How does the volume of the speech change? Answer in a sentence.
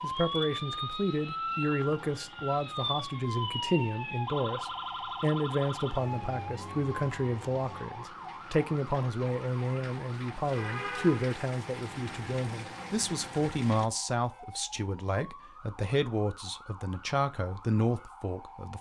The loudness of the speech stays about the same.